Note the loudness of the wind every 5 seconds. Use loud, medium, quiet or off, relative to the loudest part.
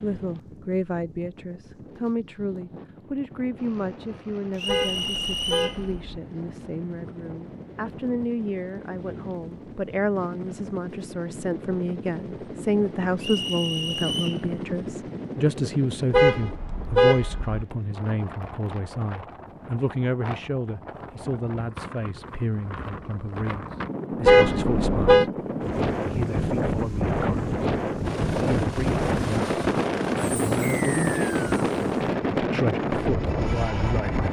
quiet, quiet, quiet, quiet, medium, loud, loud.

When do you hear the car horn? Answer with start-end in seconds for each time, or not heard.
4.7-6.2, 16.1-17.6, 24.2-25.2.